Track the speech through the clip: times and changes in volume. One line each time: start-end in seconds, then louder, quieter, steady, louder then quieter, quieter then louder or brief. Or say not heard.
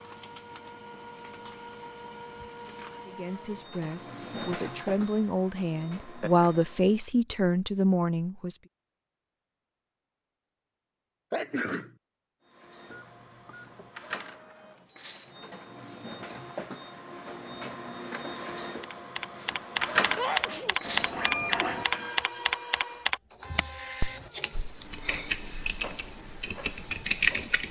3.0-8.6 louder.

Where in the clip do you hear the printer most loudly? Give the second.
20 s.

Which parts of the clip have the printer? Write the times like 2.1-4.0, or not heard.
0.0-7.0, 12.4-27.6.